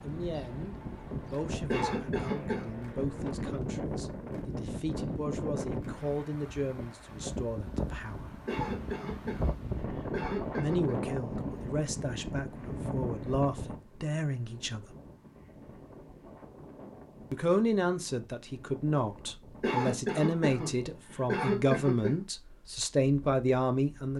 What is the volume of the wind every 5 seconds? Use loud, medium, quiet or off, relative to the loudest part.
loud, loud, loud, quiet, quiet.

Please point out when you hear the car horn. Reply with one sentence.
The car horn can't be heard in this clip.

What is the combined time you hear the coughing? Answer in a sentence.
The coughing can be heard for 6 seconds in total.